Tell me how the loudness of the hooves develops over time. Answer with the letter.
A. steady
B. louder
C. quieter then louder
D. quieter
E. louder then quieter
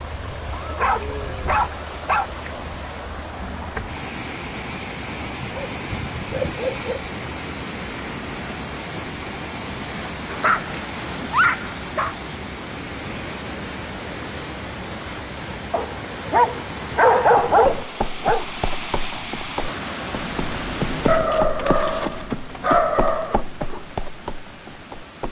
E.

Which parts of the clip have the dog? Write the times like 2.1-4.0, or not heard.
0.5-2.3, 5.2-7.1, 10.2-12.2, 15.7-18.4, 21.1-23.4.